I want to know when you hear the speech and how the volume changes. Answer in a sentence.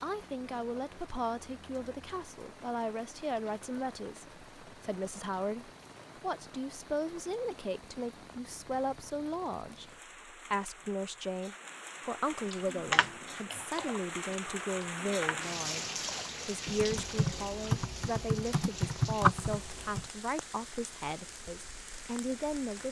You can hear the speech from 0.0 to 22.8 s, at a steady volume.